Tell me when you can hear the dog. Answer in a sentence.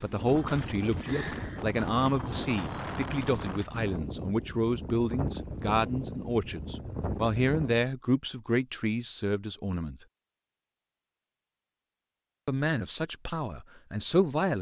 The dog can't be heard in this clip.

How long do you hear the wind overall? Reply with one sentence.
The wind can be heard for 8 seconds in total.